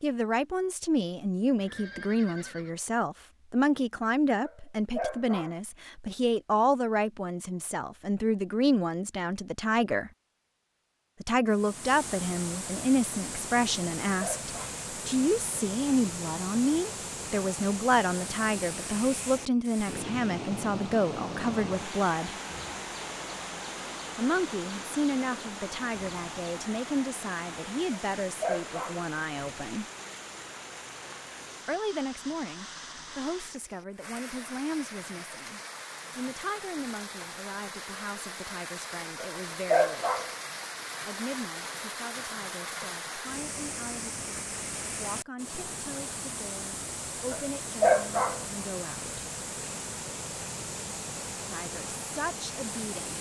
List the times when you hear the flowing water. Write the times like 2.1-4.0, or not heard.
11.4-53.1.